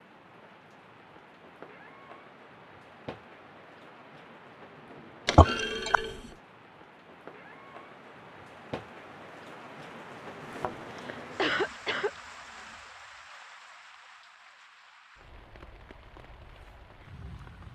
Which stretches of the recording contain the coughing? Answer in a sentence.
The coughing can be heard from 5.3 to 6.0 s and from 10.9 to 12.1 s.